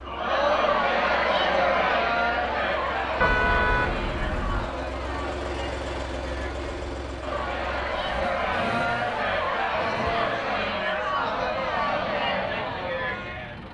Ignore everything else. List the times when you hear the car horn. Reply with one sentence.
You can hear the car horn from 3.2 to 4.8 s.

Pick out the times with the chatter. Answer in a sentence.
You can hear the chatter from 0.0 to 13.6 s.